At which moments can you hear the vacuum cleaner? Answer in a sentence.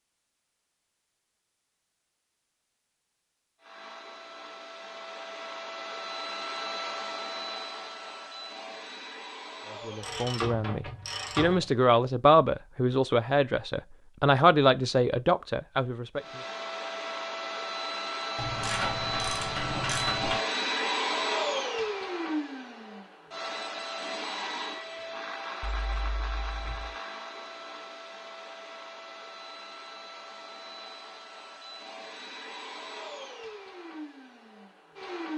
You can hear the vacuum cleaner from 3.6 to 10.2 s and from 16.1 to 35.3 s.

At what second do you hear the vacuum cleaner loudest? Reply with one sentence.
The volume of the vacuum cleaner peaks at 21 seconds.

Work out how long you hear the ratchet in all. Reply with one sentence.
The ratchet can be heard for 4 seconds in total.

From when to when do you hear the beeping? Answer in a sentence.
You can hear the beeping from 25.6 to 26.9 s.